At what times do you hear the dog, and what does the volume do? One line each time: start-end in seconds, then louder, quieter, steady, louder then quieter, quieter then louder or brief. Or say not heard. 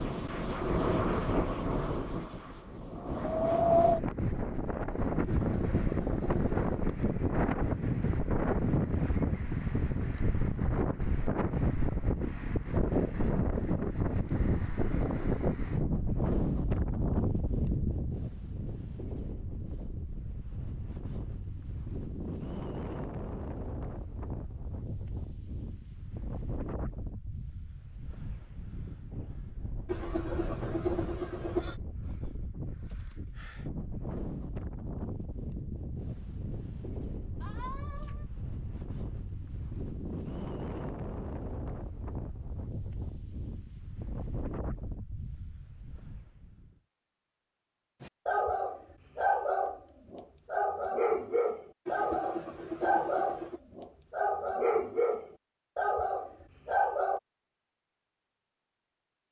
48.0-57.2 steady.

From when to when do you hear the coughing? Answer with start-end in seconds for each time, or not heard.
5.2-6.8, 29.9-31.8, 51.9-53.6.